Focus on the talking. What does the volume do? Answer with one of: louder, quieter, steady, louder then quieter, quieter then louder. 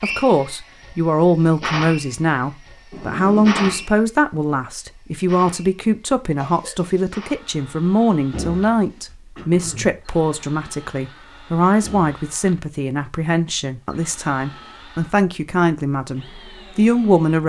steady.